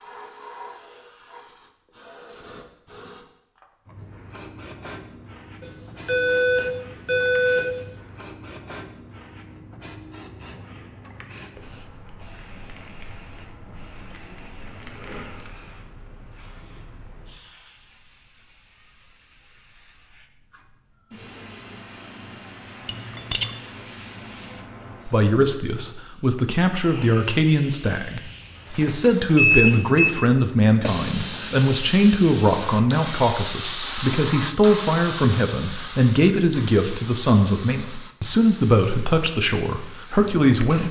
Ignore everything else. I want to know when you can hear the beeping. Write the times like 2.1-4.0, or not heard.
5.6-7.7, 28.2-30.1.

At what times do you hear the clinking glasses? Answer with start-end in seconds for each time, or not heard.
22.9-23.6.